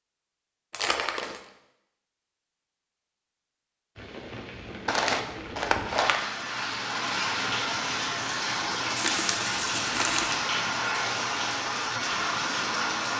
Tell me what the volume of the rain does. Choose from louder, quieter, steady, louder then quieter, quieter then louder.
louder.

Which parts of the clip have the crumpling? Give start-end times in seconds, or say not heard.
0.7-1.4, 4.8-6.2, 8.9-10.4.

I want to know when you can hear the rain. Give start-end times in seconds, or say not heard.
4.0-13.1.